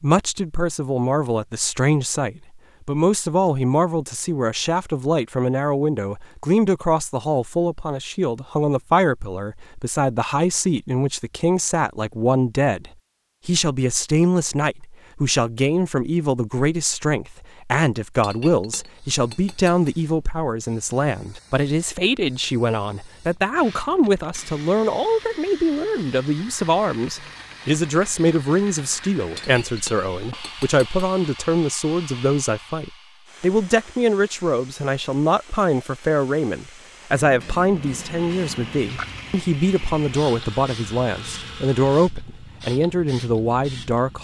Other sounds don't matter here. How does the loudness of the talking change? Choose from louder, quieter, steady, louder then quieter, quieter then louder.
steady.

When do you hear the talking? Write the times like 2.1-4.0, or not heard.
0.0-44.1.